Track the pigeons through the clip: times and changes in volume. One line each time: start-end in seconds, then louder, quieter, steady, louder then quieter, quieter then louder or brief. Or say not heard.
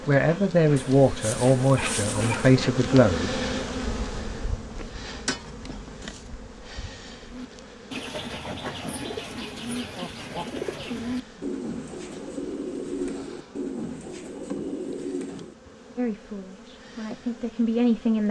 7.2-15.8 steady.